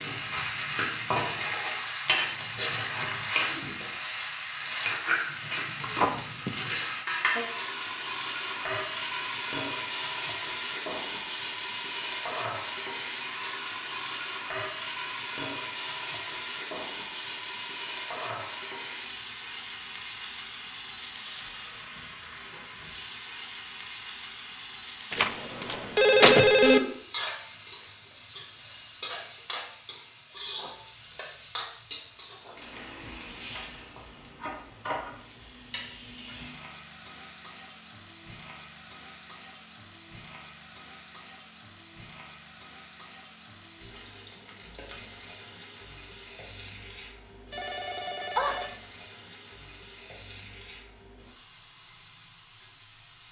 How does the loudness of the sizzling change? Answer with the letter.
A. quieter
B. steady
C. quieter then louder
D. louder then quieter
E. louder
A.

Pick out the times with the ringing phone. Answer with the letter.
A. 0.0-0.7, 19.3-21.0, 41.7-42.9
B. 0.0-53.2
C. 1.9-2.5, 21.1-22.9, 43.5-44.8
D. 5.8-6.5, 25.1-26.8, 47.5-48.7
D.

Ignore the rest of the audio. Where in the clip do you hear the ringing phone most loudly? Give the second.
26 s.